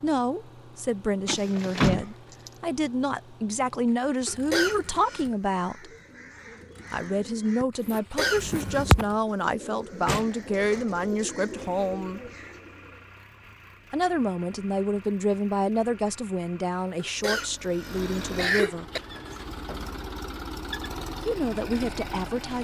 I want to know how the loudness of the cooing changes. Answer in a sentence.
The volume of the cooing goes up, then down.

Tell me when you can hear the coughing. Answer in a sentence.
You can hear the coughing from 4.2 to 5.3 s, from 8.0 to 8.8 s and from 16.9 to 19.0 s.